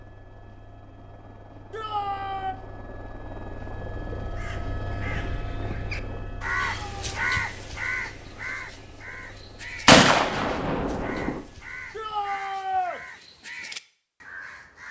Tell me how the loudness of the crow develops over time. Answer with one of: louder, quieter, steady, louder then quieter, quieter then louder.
louder then quieter.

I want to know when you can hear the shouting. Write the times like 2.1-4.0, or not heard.
1.7-2.5, 6.7-7.2, 11.9-13.0.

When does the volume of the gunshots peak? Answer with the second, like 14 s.
10 s.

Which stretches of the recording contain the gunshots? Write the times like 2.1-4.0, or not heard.
9.8-11.4.